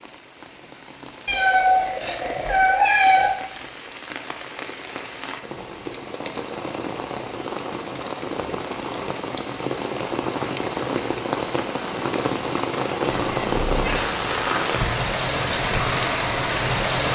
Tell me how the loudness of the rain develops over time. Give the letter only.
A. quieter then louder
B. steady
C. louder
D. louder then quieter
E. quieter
C.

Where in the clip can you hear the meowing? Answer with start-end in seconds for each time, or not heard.
1.2-3.3, 13.1-14.1.